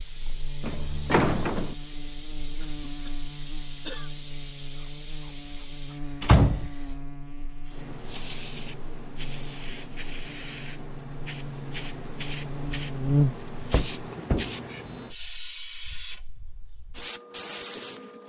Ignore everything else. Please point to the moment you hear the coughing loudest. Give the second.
4 s.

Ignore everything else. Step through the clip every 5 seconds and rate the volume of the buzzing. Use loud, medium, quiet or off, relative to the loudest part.
quiet, quiet, loud, off.